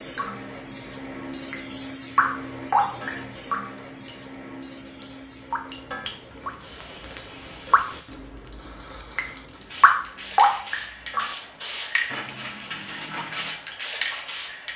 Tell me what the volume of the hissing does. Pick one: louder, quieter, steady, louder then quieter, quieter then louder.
quieter then louder.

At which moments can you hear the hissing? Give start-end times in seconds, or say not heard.
0.0-14.7.